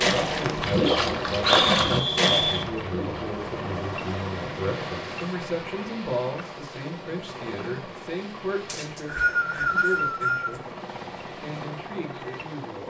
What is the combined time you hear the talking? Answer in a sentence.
The talking can be heard for 13 seconds in total.